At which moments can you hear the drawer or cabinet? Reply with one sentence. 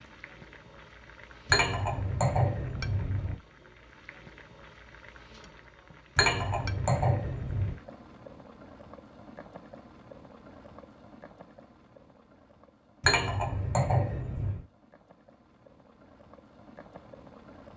You can't hear the drawer or cabinet here.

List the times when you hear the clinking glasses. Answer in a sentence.
You can hear the clinking glasses from 1.4 to 3.4 s, from 6.2 to 7.8 s and from 13.0 to 14.6 s.